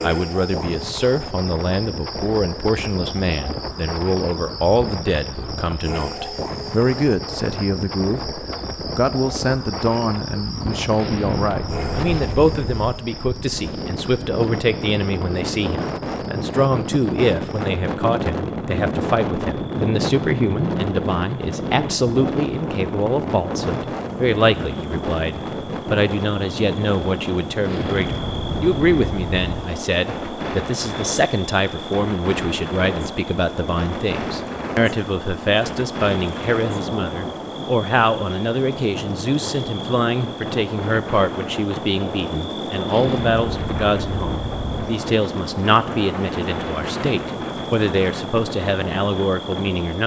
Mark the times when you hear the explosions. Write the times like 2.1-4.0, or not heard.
10.9-12.9, 27.6-29.6, 42.9-44.9.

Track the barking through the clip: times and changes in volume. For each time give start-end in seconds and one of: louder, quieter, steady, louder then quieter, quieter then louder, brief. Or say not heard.
not heard.